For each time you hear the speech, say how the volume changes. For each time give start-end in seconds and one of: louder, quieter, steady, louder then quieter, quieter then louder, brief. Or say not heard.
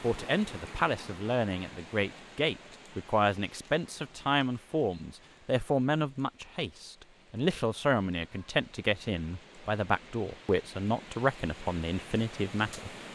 0.0-12.9 steady.